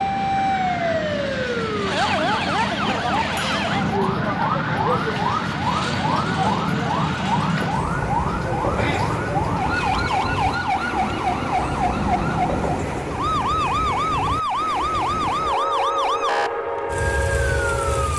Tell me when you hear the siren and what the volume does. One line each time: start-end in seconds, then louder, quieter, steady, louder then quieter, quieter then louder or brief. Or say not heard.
0.0-18.1 steady.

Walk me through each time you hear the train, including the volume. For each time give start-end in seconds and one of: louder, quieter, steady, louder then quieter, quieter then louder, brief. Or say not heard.
0.0-18.1 steady.